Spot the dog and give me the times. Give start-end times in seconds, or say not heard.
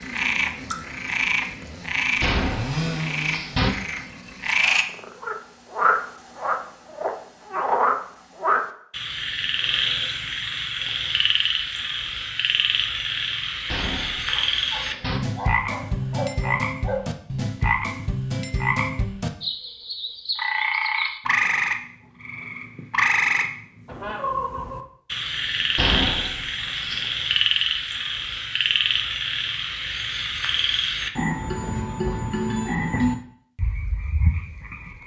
14.3-17.1.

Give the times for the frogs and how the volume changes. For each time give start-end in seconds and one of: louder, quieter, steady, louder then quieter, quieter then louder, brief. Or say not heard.
0.0-35.0 steady.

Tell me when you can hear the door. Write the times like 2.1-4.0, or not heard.
2.2-3.7, 13.7-15.2, 25.8-27.1.